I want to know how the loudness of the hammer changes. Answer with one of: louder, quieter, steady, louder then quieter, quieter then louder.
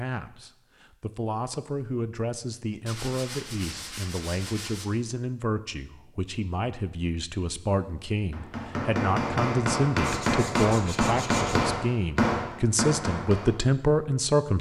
steady.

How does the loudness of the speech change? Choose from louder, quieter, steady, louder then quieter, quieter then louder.
louder.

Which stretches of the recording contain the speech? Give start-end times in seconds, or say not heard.
0.0-14.5.